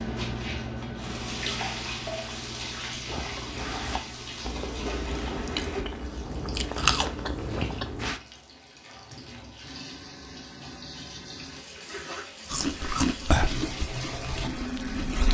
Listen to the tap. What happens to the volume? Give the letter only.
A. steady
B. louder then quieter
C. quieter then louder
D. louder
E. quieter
C.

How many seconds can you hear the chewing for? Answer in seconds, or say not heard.
8 s.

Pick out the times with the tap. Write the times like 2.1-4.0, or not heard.
0.0-15.3.